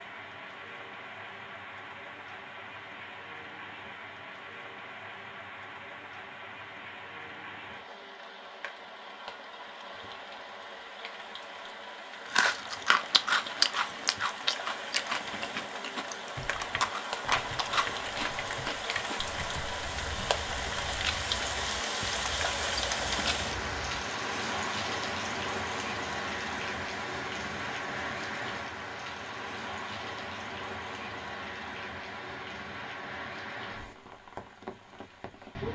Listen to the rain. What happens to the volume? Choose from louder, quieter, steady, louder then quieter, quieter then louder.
louder then quieter.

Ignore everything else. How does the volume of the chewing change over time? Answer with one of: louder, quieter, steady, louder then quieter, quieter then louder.
quieter.